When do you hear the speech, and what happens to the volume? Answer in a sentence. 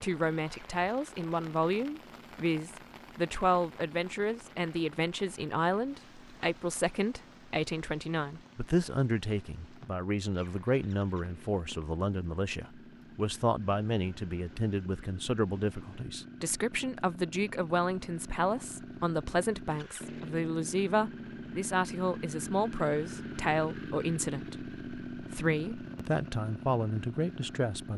You can hear the speech from 0.0 to 27.9 s, at a steady volume.